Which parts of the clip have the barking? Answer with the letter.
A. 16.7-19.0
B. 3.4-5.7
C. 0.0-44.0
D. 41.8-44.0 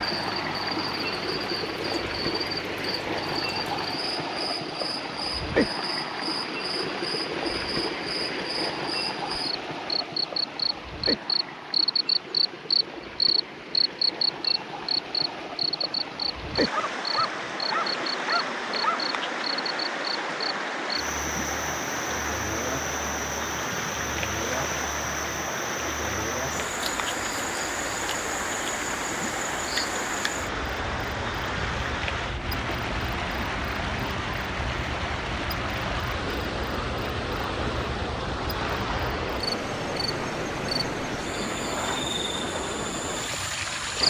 A.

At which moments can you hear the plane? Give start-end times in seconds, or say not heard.
not heard.